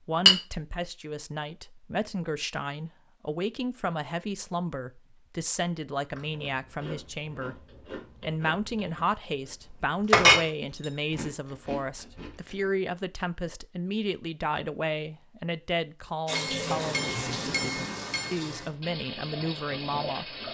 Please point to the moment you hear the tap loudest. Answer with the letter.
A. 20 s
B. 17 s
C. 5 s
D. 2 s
B.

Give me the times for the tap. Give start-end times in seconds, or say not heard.
16.2-20.4.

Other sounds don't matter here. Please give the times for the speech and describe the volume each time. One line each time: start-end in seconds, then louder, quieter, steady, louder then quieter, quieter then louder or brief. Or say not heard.
0.1-20.4 steady.